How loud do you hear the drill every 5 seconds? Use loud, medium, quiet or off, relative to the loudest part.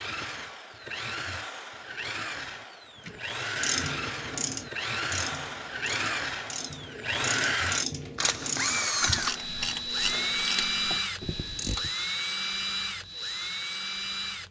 medium, loud, loud.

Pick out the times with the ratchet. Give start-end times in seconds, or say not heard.
3.0-11.9.